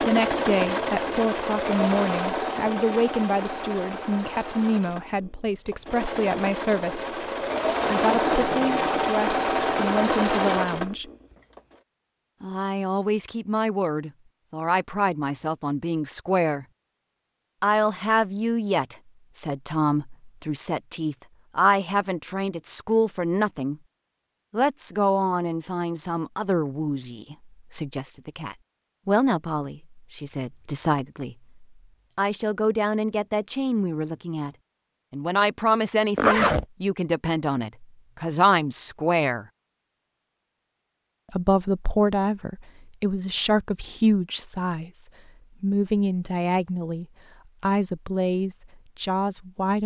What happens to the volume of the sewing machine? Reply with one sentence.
The loudness of the sewing machine goes down, then up.